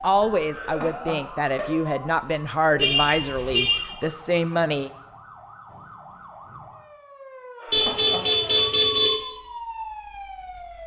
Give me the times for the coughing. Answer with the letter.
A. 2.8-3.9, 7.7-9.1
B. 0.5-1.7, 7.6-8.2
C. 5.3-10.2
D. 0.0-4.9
B.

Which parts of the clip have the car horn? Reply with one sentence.
The car horn can be heard from 2.8 to 3.9 s and from 7.7 to 9.1 s.